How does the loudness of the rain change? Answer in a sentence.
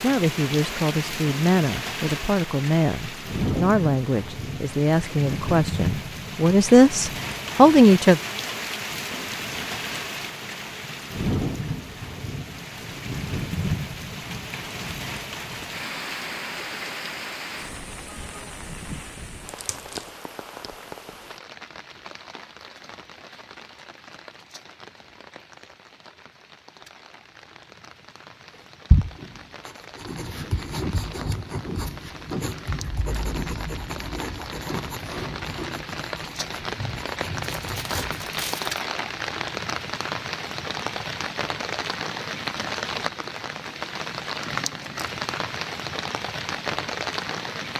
The volume of the rain goes down, then up.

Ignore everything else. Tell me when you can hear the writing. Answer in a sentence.
You can hear the writing from 28.9 to 38.5 s.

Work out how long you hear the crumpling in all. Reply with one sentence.
The crumpling can be heard for 2 seconds in total.